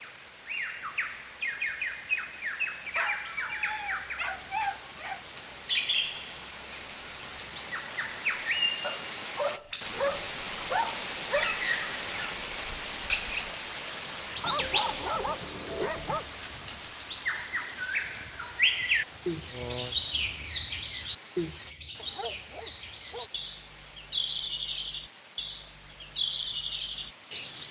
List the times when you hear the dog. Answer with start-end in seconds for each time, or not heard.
3.0-5.2, 8.8-11.6, 14.4-16.2, 21.9-23.3.